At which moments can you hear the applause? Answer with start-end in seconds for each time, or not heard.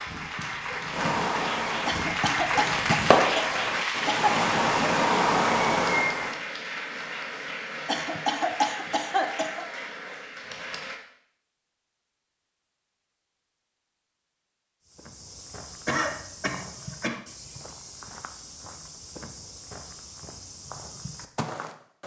0.0-10.9.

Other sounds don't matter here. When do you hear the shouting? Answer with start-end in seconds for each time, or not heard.
not heard.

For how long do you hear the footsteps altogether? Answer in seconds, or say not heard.
7 s.